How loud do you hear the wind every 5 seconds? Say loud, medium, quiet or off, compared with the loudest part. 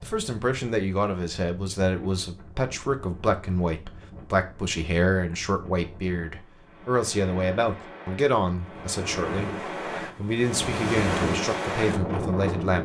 quiet, medium, loud.